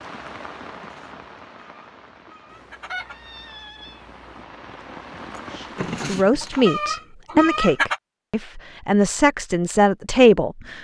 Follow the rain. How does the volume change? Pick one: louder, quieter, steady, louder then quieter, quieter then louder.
quieter then louder.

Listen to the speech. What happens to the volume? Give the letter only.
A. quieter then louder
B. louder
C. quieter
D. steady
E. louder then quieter
A.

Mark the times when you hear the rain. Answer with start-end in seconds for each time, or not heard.
0.0-6.2.